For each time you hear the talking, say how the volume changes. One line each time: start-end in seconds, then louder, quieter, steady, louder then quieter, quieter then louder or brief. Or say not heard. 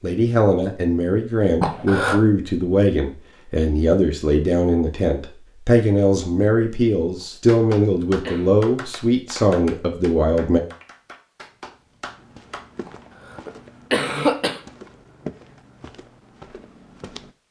0.0-10.6 steady.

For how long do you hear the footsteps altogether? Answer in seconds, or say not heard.
5 s.